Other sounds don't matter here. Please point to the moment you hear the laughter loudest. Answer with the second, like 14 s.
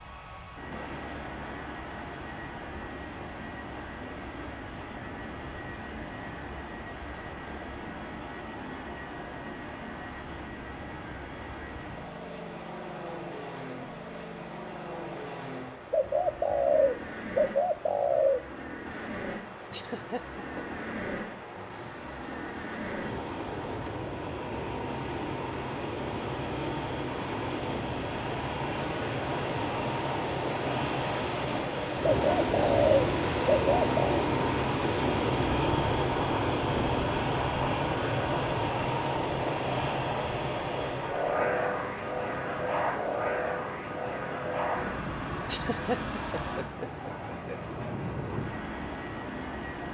46 s.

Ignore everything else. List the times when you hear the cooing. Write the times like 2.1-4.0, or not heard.
15.9-18.4, 32.1-34.2.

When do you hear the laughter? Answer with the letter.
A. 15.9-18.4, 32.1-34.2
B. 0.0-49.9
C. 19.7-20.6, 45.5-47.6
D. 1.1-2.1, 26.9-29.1
C.